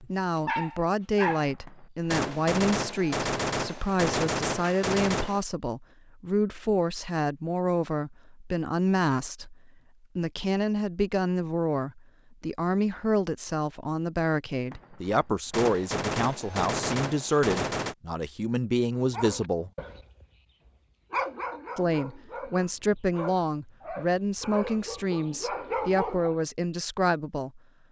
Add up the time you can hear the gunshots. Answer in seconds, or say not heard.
7 s.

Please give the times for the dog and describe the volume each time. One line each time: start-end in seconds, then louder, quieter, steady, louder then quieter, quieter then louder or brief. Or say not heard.
0.0-1.5 brief
19.1-20.2 brief
21.1-26.4 louder.